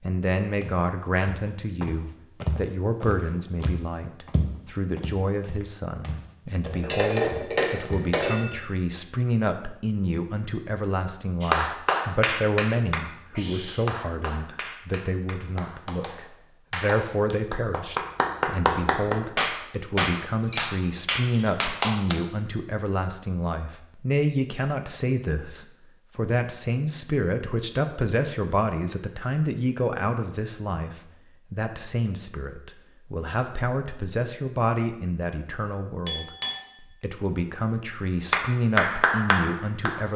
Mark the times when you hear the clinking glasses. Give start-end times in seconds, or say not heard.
6.7-8.5, 20.4-21.8, 36.0-36.6.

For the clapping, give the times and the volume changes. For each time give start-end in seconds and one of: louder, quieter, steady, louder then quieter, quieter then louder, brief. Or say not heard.
11.4-22.1 quieter then louder
38.3-40.1 brief.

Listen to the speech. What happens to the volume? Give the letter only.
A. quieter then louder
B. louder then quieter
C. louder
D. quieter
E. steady
E.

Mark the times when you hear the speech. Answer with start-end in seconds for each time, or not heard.
0.0-40.1.